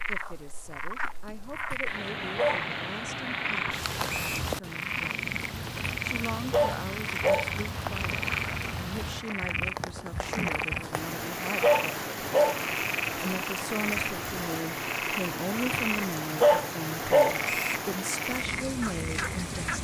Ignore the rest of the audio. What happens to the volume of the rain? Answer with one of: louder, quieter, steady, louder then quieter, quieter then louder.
steady.